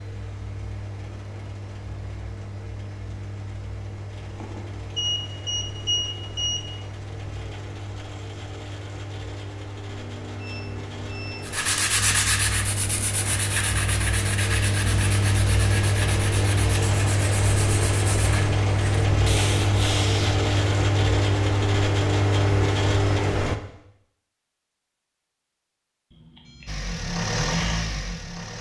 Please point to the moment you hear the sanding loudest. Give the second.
12 s.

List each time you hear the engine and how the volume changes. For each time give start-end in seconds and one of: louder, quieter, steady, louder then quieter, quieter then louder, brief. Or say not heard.
0.0-23.6 louder
26.6-28.5 brief.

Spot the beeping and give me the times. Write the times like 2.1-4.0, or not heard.
4.3-6.7, 9.8-11.7, 26.1-26.8.